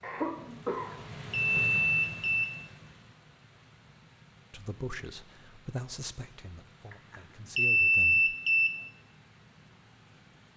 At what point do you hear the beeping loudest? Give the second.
8 s.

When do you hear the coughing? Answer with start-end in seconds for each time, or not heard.
0.0-1.7.